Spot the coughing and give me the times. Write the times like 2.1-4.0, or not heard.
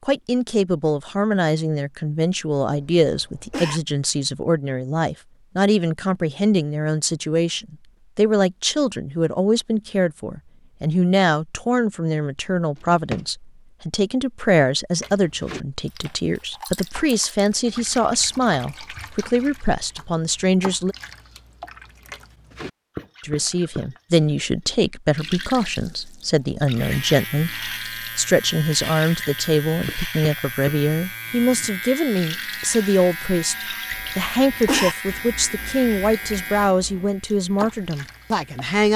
3.0-3.8, 33.9-35.0.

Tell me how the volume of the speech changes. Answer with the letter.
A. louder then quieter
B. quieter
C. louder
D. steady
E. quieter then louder
D.